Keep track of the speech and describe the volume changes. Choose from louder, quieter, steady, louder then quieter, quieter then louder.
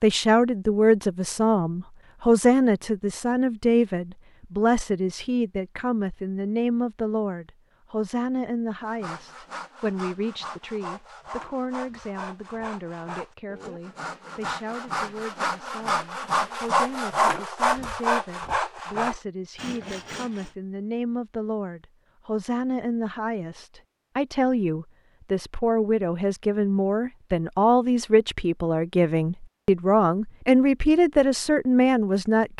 quieter then louder.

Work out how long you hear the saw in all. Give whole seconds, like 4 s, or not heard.
12 s.